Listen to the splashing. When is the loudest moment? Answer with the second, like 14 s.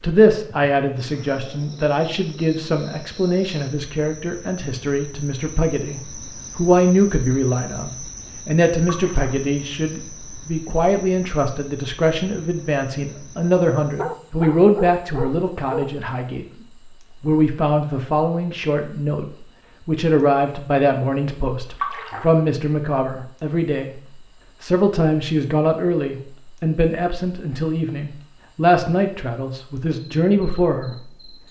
22 s.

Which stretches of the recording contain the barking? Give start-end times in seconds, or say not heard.
13.9-15.9.